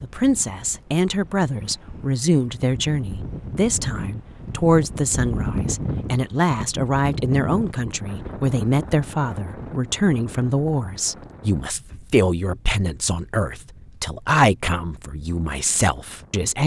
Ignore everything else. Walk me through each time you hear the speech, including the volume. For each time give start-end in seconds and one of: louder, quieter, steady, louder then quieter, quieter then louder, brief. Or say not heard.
0.0-16.6 steady.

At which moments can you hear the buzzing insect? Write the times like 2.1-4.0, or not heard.
not heard.